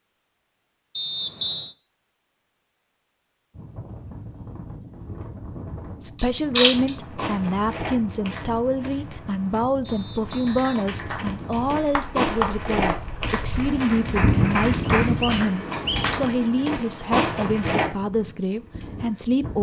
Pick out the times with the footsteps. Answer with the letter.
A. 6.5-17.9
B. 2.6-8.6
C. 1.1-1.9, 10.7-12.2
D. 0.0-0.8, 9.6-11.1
A.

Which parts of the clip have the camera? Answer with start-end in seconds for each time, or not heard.
6.2-6.9, 15.7-17.2.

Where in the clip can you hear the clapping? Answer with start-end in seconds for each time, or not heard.
10.2-16.2.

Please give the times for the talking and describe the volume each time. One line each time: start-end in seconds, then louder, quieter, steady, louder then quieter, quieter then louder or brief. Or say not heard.
6.0-19.5 steady.